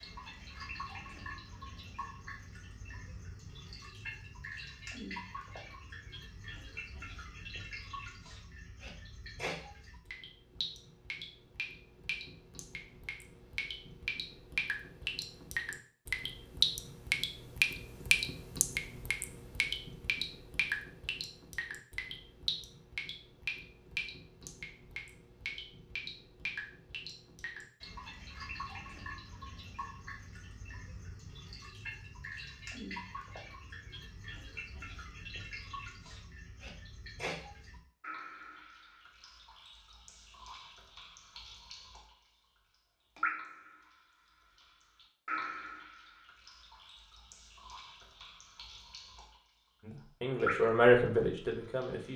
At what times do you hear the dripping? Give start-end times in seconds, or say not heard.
0.0-42.1, 43.1-44.0, 44.5-49.4, 50.4-52.1.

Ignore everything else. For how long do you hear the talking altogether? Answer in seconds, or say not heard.
2 s.